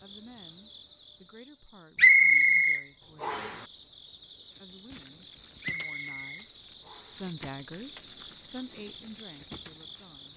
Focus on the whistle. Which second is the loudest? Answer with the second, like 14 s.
2 s.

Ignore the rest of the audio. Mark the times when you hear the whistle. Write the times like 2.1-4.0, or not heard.
1.9-3.5, 5.6-7.2.